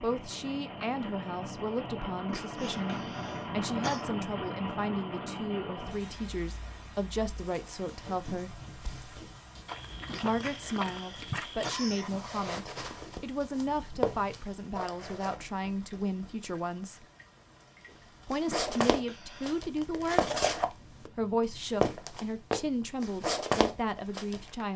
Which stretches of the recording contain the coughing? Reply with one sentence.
The coughing can be heard from 2.2 to 4.0 s, from 10.1 to 12.1 s and from 18.4 to 19.6 s.